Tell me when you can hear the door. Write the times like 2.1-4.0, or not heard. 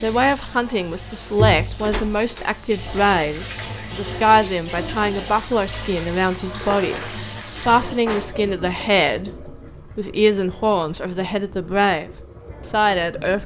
1.8-2.5, 8.1-8.5.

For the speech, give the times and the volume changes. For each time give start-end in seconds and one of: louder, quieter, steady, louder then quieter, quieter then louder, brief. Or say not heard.
0.0-13.4 steady.